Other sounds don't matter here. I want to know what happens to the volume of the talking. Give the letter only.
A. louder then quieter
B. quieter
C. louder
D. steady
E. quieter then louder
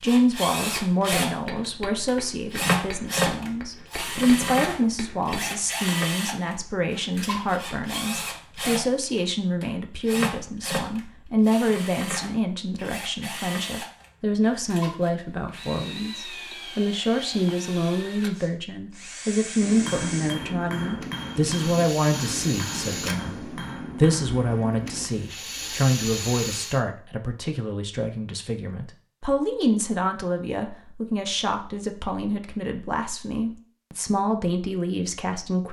D.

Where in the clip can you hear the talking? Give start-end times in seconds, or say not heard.
0.0-23.4, 23.9-35.6.